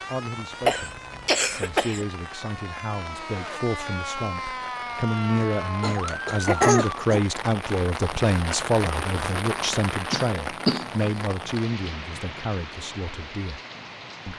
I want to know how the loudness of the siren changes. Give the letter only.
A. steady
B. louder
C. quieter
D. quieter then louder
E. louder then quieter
B.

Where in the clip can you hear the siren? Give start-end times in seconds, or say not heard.
0.0-6.8.